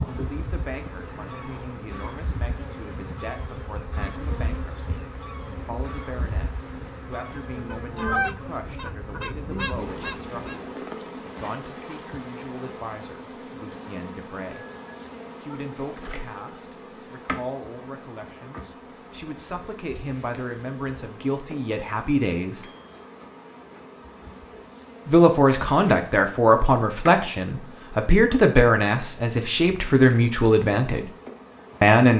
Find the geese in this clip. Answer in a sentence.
The geese can be heard from 0.2 to 10.6 s.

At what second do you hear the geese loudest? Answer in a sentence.
The volume of the geese peaks at 8 seconds.